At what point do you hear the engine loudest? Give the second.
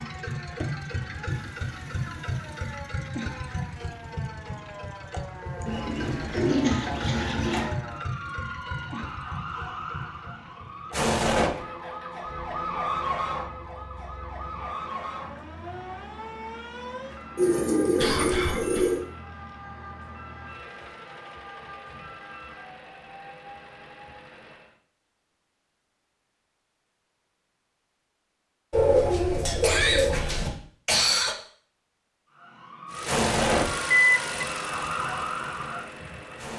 34 s.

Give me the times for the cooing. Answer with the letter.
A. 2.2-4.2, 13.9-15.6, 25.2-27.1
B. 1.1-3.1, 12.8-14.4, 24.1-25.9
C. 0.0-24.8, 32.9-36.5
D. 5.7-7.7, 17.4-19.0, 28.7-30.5
D.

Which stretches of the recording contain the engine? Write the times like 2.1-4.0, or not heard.
0.0-24.8, 32.9-36.5.